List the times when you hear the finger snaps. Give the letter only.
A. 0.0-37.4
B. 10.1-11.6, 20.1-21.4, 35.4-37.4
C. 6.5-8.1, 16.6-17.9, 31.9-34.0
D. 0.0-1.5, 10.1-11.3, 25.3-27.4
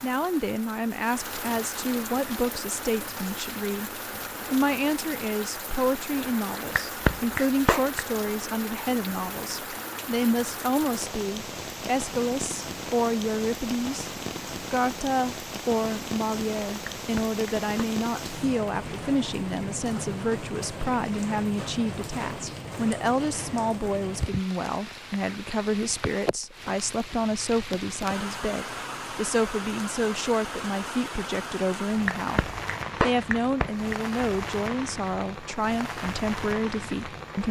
C.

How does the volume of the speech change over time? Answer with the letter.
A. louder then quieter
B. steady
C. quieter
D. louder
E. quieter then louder
B.